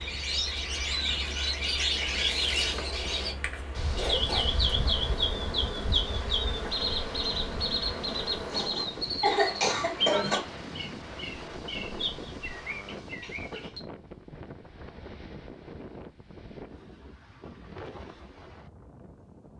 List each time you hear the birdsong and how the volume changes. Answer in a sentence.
You can hear the birdsong from 0.0 to 13.8 s, getting quieter.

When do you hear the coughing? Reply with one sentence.
You can hear the coughing from 3.4 to 4.5 s, from 8.5 to 10.4 s and from 13.2 to 13.8 s.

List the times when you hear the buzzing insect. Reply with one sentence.
The buzzing insect can be heard from 0.0 to 8.8 s.